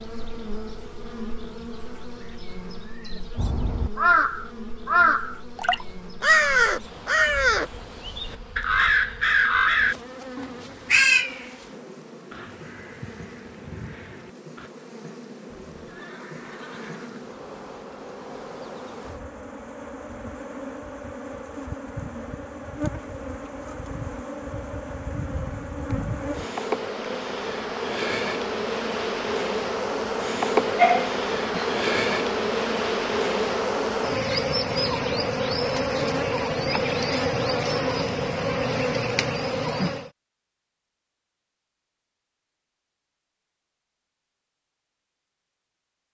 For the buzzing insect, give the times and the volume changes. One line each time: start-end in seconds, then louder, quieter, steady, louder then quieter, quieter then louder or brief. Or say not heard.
0.0-40.1 louder.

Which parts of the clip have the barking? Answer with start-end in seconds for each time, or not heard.
30.8-31.8.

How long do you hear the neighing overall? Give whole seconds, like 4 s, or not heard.
2 s.